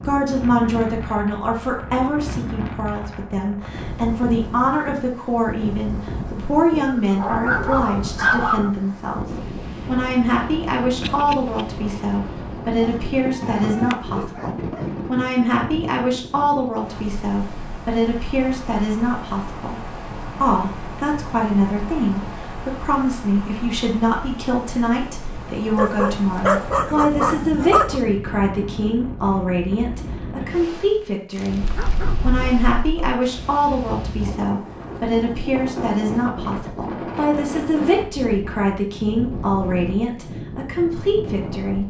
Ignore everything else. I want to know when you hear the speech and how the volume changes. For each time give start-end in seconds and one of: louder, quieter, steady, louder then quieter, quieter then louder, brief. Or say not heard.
0.0-41.8 steady.